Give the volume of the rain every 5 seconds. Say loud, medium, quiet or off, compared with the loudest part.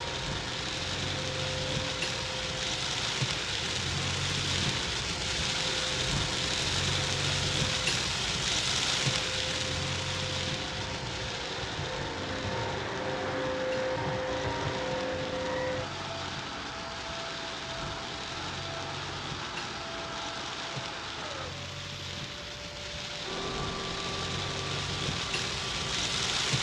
loud, loud, medium, medium, medium, loud.